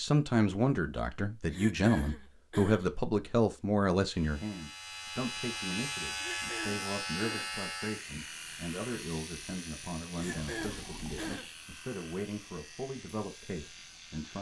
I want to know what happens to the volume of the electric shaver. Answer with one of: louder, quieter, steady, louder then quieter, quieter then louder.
quieter.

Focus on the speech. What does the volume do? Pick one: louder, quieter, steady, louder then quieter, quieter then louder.
quieter.